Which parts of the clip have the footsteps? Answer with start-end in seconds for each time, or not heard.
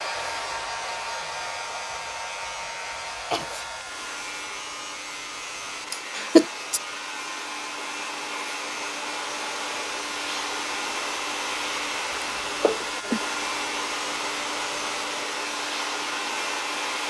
not heard.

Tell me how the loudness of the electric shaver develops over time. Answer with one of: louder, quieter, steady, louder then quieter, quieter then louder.
steady.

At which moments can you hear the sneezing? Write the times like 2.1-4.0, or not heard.
3.3-3.7, 5.9-6.8, 12.1-13.2.